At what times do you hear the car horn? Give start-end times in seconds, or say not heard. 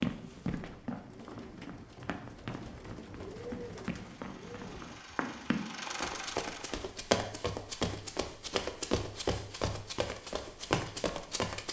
not heard.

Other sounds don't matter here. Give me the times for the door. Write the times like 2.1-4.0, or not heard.
5.8-6.3.